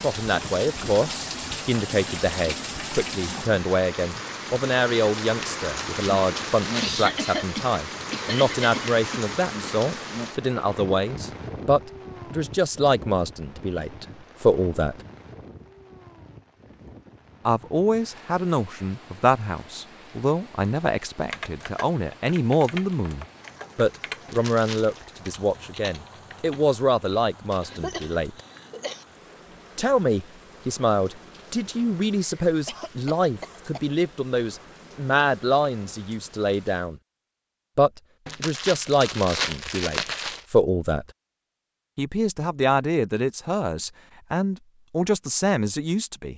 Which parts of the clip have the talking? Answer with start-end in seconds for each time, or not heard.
0.0-15.0, 17.4-28.4, 29.8-37.0, 37.8-41.0, 42.0-46.3.